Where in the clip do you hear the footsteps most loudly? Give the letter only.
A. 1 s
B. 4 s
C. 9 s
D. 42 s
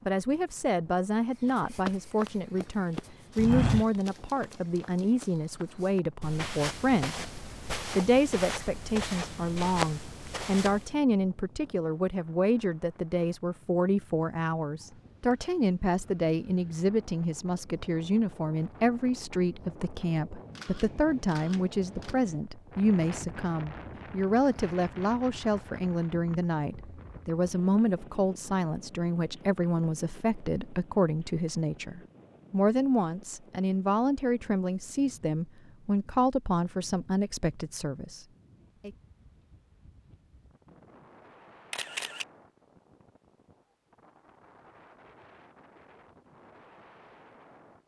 B.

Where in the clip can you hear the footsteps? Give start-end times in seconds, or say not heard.
1.4-10.9.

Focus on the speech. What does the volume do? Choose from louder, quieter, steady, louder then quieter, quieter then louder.
steady.